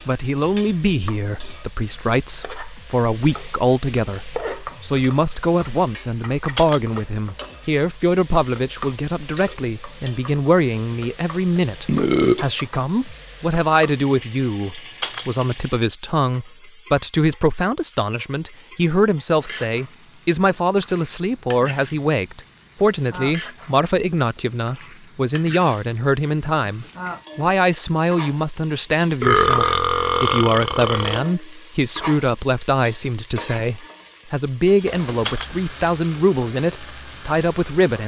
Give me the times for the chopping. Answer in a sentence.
You can't hear the chopping here.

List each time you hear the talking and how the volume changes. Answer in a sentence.
You can hear the talking from 0.1 to 38.0 s, at a steady volume.